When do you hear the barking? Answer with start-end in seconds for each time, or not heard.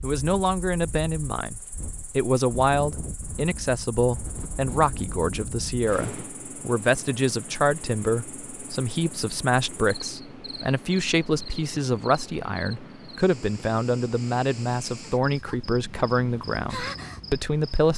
not heard.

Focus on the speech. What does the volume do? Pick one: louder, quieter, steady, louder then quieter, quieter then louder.
steady.